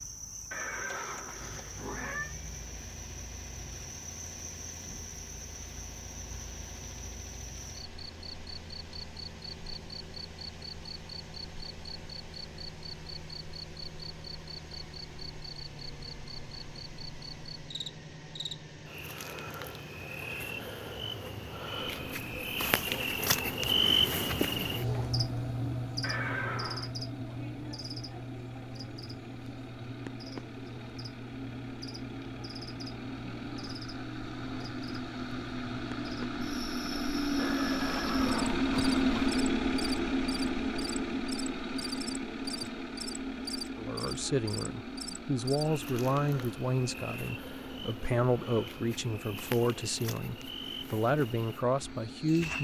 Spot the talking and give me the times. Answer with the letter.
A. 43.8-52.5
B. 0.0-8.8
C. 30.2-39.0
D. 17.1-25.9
A.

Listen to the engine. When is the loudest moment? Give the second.
39 s.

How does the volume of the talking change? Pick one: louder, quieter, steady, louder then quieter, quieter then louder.
steady.